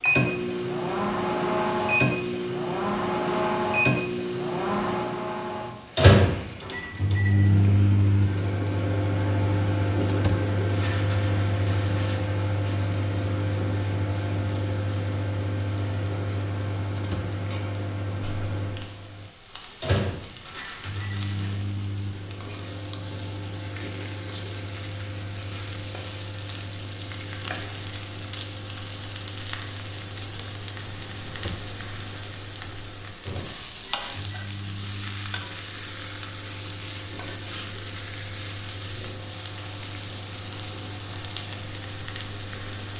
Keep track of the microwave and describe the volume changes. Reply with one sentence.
The volume of the microwave goes down.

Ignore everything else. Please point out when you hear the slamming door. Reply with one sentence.
You can hear the slamming door from 10.1 to 10.5 s, from 16.9 to 17.4 s and from 31.2 to 31.7 s.